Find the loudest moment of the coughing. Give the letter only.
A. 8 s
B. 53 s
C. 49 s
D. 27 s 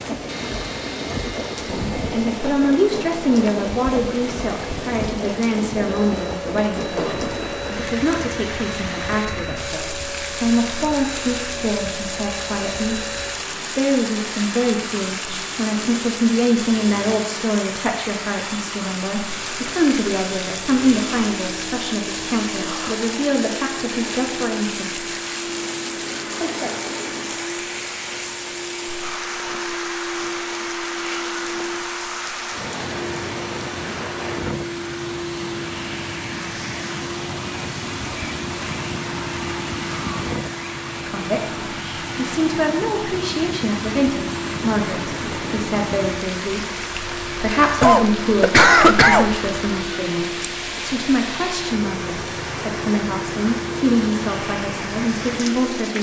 C.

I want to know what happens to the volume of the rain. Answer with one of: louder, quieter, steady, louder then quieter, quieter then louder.
steady.